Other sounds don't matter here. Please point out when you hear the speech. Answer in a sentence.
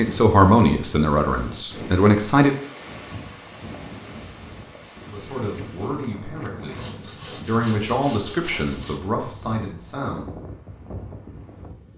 You can hear the speech from 0.0 to 2.5 s and from 5.1 to 10.3 s.